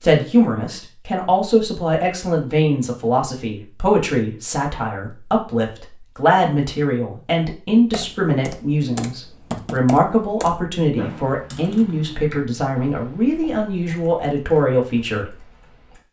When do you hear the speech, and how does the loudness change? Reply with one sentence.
You can hear the speech from 0.0 to 15.3 s, at a steady volume.